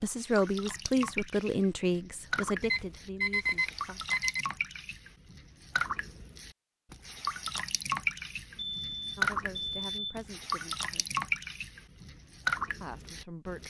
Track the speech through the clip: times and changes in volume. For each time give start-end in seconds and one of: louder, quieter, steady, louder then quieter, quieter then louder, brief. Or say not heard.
0.0-4.1 quieter
9.2-11.1 brief
12.8-13.6 brief.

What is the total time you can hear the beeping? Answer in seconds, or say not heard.
4 s.